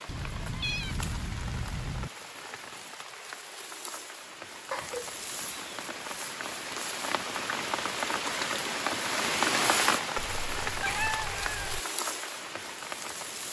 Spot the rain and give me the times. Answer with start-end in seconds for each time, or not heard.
0.0-13.4.